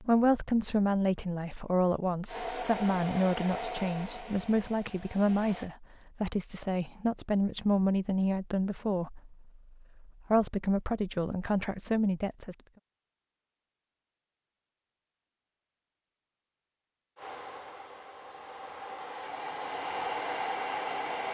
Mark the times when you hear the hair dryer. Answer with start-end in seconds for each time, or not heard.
2.2-5.7, 17.1-21.2.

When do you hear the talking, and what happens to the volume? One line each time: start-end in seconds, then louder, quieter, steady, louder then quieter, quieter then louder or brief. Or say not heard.
0.0-12.6 steady.